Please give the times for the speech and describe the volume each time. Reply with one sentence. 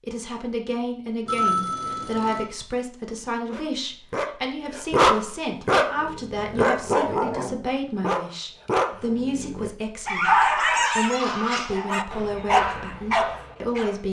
The speech can be heard from 0.0 to 14.0 s, at a steady volume.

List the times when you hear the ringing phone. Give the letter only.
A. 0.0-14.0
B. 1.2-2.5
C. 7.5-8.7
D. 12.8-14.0
B.